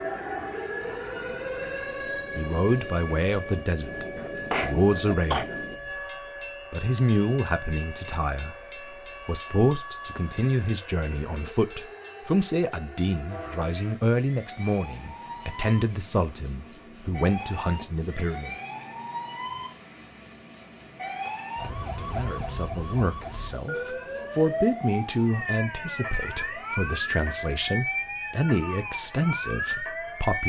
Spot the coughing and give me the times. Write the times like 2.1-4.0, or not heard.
4.2-5.5.